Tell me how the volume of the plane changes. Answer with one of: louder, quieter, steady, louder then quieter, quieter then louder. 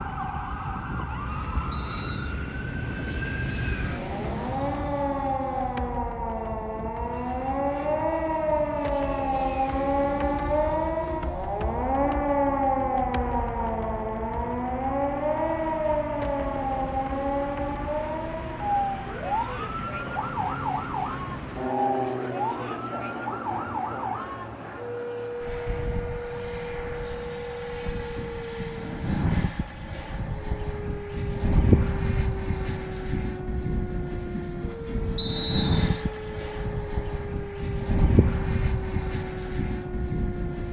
louder.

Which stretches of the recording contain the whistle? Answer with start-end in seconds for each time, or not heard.
1.7-2.4, 35.1-36.0.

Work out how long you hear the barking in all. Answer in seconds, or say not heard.
not heard.